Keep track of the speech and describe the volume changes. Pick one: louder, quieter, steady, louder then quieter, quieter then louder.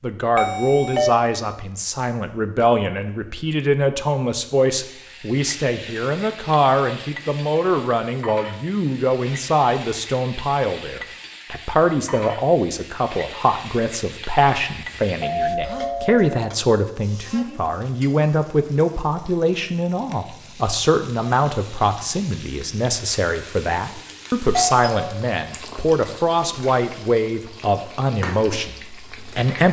steady.